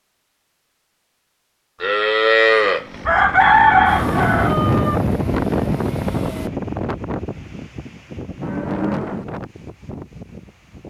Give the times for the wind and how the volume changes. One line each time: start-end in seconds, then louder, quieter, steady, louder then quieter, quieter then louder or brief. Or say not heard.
3.5-10.8 quieter.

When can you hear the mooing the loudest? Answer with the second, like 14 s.
2 s.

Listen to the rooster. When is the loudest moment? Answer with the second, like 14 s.
4 s.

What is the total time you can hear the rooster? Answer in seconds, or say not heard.
2 s.